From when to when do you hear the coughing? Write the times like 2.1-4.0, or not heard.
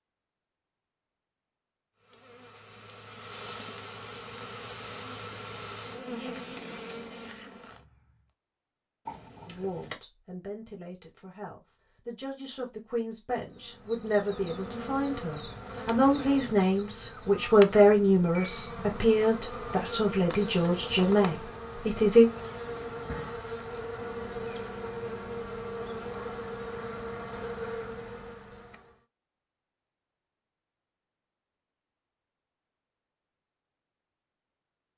9.1-9.9.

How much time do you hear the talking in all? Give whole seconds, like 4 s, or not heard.
13 s.